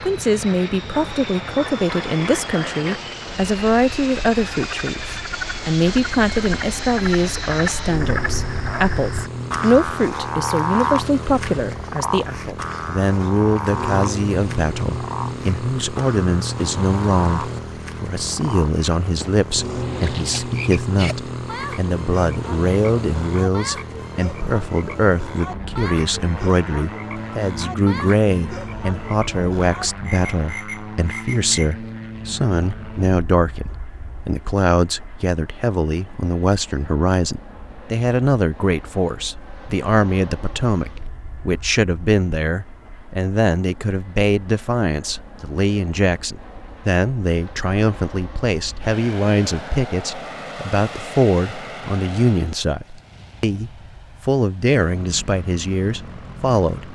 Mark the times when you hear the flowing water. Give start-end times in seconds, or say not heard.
not heard.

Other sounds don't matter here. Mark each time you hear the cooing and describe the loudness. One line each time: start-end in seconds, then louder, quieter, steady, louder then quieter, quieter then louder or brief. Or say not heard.
not heard.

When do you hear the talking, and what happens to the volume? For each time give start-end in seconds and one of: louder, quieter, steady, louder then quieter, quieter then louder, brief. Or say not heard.
0.0-56.9 steady.